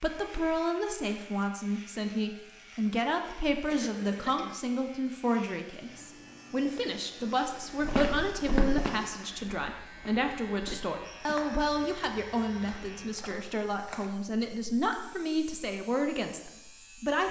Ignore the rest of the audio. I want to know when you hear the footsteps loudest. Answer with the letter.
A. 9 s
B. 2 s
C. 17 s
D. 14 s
A.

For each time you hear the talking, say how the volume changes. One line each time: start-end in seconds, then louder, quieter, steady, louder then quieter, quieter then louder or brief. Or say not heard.
0.0-17.2 steady.